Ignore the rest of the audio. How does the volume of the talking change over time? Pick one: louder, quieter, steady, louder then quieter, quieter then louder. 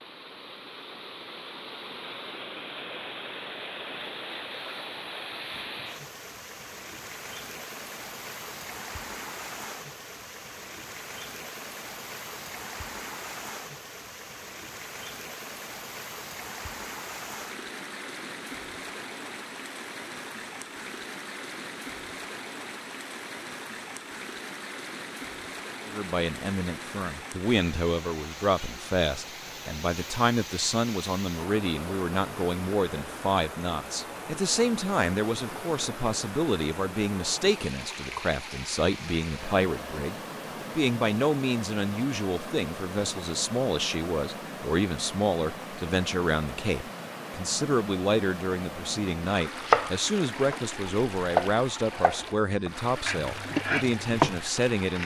steady.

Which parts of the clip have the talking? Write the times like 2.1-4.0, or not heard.
25.9-55.0.